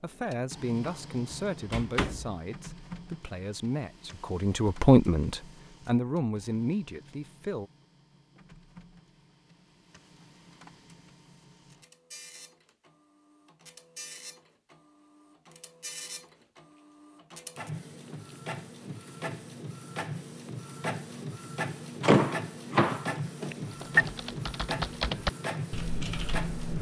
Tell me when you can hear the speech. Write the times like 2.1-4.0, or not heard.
0.0-7.7.